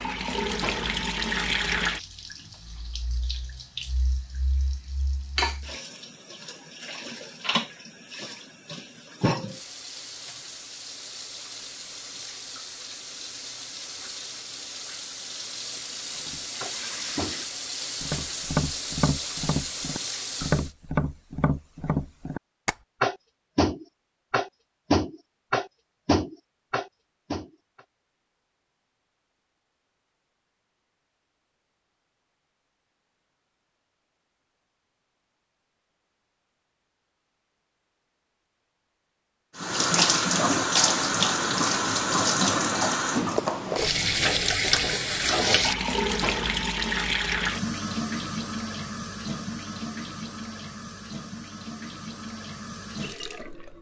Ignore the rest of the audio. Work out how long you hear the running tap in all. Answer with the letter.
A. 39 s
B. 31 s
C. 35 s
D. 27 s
C.